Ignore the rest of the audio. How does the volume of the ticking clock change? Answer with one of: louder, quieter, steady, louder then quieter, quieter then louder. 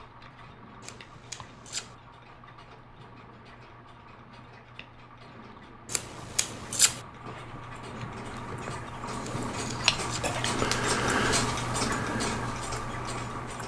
louder.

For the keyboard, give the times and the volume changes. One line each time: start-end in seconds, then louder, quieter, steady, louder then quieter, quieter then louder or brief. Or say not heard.
not heard.